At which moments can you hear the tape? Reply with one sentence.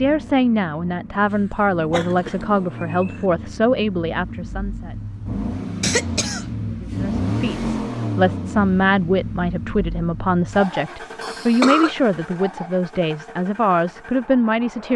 The tape can't be heard in this clip.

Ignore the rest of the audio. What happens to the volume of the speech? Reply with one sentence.
The loudness of the speech stays about the same.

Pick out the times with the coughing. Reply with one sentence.
The coughing can be heard from 1.3 to 3.2 s, from 5.8 to 6.5 s and from 11.2 to 11.9 s.